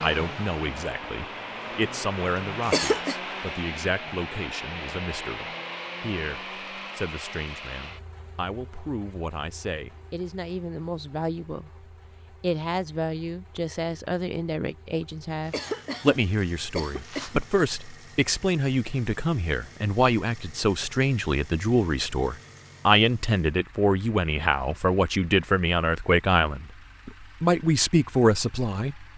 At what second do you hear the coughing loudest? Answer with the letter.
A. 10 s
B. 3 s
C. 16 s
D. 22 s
B.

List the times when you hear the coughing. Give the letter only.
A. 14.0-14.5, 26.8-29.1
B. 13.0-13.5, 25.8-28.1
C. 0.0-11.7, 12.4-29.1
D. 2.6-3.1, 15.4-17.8
D.